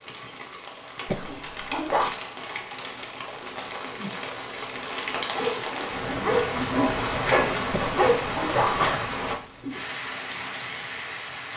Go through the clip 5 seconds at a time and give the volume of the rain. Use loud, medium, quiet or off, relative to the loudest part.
medium, loud, medium.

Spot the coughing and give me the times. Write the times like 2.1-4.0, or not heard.
1.1-2.1, 7.7-9.0.